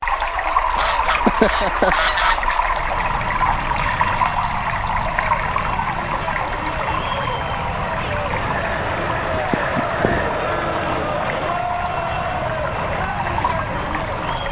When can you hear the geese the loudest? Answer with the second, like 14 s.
1 s.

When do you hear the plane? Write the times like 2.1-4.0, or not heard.
2.6-14.4.